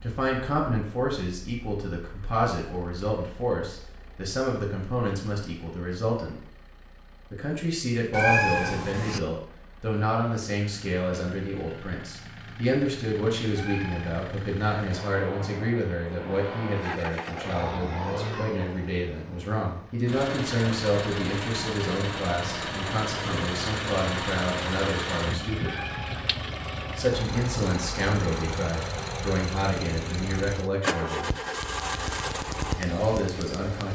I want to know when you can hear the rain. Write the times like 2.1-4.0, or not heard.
not heard.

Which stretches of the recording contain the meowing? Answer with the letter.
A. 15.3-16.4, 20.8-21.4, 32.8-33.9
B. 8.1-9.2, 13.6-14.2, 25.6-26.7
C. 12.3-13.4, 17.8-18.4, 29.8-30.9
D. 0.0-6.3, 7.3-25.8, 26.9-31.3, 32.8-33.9
B.